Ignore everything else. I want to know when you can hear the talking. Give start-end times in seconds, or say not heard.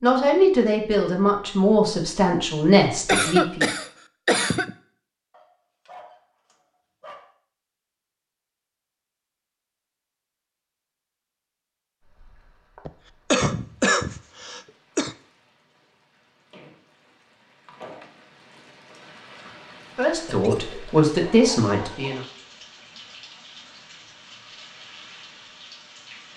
0.0-3.7, 19.9-22.2.